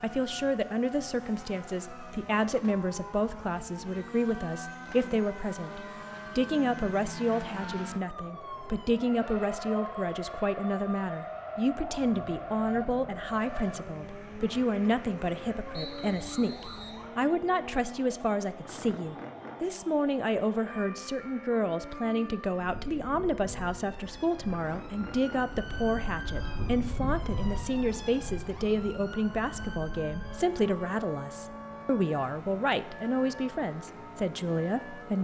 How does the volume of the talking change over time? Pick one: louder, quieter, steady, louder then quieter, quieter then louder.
steady.